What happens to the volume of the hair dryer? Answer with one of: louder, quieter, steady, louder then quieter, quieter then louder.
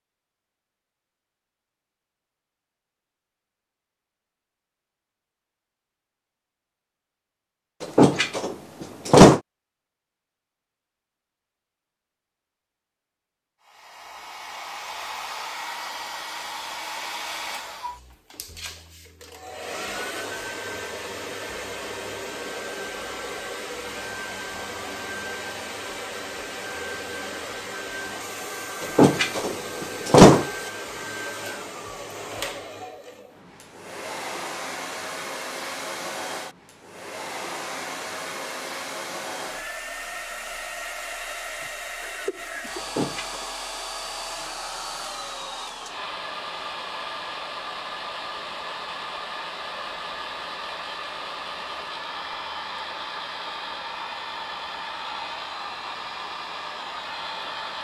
steady.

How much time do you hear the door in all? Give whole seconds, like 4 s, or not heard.
4 s.